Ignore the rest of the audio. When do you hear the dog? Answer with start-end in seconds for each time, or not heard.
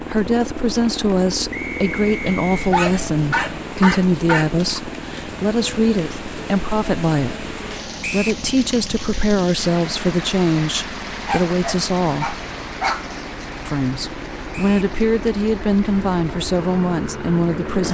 2.2-4.8, 11.2-13.2.